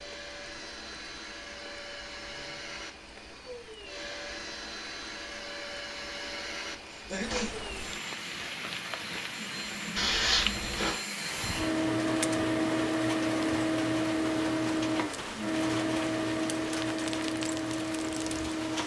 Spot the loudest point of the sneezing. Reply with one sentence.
The volume of the sneezing peaks at 10 seconds.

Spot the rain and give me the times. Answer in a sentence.
You can hear the rain from 0.0 to 18.8 s.